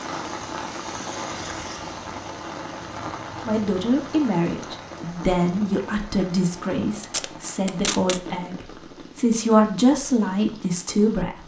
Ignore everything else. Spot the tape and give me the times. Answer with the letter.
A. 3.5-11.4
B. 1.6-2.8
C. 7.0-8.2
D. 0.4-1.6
C.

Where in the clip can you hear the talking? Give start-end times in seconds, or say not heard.
3.5-11.4.